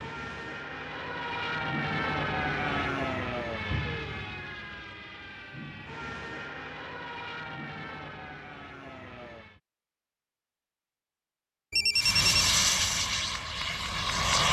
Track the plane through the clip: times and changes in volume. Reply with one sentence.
You can hear the plane from 0.0 to 9.6 s, getting quieter; and briefly from 11.9 to 14.4 s.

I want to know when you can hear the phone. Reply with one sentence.
The phone can be heard from 11.7 to 12.5 s.